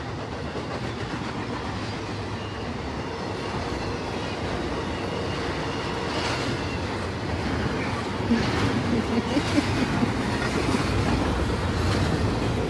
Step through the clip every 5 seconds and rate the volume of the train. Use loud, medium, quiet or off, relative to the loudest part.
medium, loud, loud.